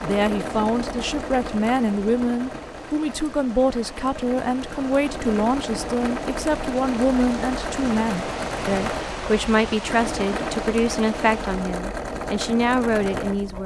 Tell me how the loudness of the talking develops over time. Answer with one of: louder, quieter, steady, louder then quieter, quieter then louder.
steady.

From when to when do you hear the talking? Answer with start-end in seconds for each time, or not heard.
0.0-13.6.